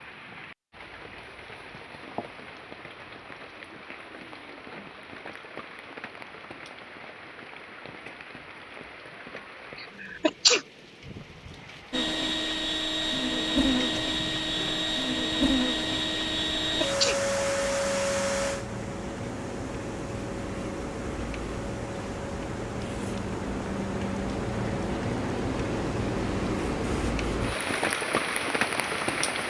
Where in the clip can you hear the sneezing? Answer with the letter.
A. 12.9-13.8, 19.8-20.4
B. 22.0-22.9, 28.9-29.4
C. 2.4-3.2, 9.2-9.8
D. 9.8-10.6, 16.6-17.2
D.